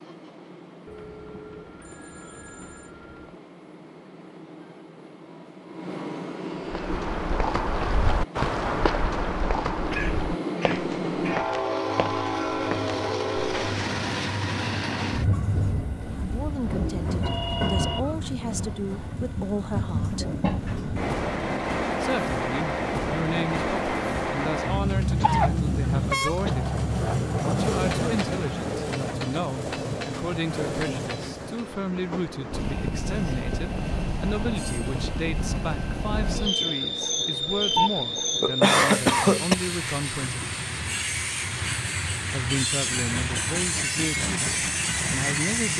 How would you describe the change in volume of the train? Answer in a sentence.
The volume of the train goes up.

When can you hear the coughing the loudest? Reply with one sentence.
The volume of the coughing peaks at 39 seconds.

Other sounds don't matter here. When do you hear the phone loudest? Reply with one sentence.
The loudest moment of the phone is at 38 seconds.